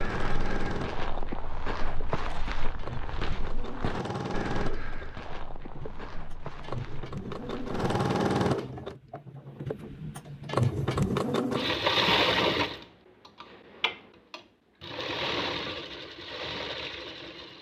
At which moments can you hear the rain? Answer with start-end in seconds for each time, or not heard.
not heard.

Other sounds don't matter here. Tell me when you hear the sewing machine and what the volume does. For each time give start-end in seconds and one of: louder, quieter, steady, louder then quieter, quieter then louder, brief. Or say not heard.
0.0-17.5 louder then quieter.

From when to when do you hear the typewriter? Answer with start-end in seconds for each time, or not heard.
not heard.